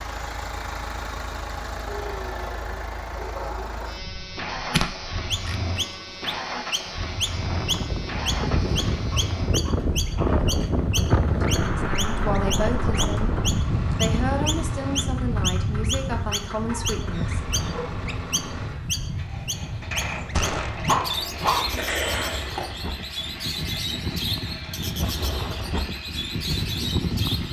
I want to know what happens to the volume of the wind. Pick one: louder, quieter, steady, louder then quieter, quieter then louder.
quieter then louder.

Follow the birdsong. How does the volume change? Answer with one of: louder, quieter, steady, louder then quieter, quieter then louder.
steady.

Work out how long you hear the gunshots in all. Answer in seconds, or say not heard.
2 s.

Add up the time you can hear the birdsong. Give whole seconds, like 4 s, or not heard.
22 s.